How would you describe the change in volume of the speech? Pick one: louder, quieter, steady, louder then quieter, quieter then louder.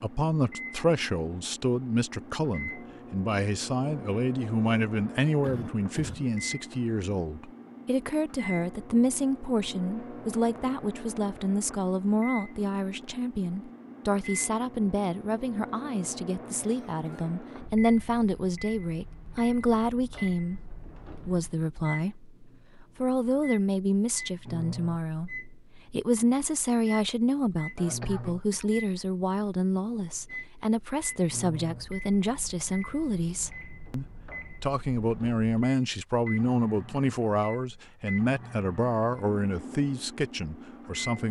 steady.